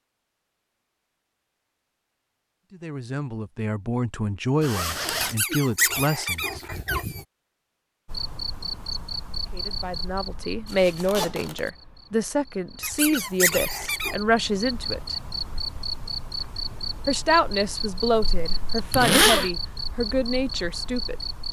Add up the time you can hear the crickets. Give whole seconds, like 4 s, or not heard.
13 s.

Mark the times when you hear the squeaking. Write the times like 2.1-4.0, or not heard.
5.2-7.2, 12.8-14.2.